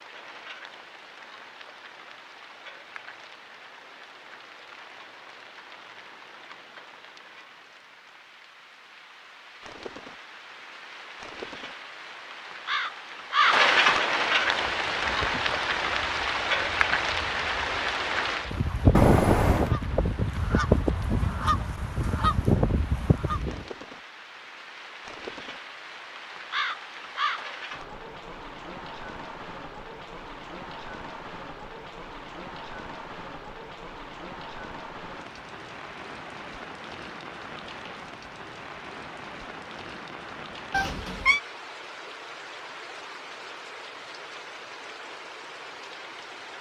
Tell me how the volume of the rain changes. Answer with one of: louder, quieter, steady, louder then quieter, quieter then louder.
louder then quieter.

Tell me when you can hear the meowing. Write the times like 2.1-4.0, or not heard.
18.9-19.8, 40.7-41.4.